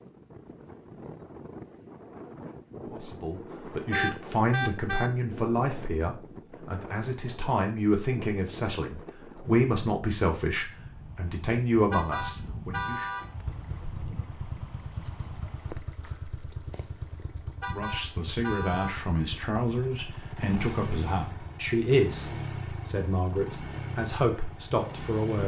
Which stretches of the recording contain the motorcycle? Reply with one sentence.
You can hear the motorcycle from 13.4 to 25.4 s.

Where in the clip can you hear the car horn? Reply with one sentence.
The car horn can be heard from 3.9 to 5.1 s, from 11.9 to 13.2 s and from 17.6 to 19.0 s.